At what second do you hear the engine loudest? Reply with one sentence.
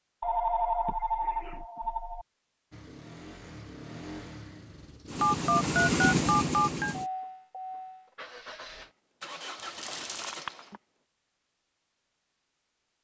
The loudest moment of the engine is at 6 seconds.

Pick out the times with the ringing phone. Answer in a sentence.
You can hear the ringing phone from 0.2 to 2.2 s, from 5.2 to 7.0 s and from 10.1 to 10.8 s.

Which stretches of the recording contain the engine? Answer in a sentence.
You can hear the engine from 2.7 to 10.8 s.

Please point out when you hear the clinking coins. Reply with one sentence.
The clinking coins can be heard from 9.6 to 10.4 s.